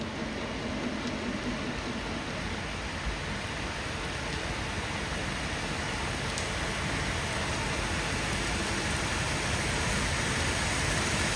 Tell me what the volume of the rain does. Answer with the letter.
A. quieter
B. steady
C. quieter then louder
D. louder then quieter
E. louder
E.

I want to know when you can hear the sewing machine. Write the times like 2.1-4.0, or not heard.
0.0-2.6.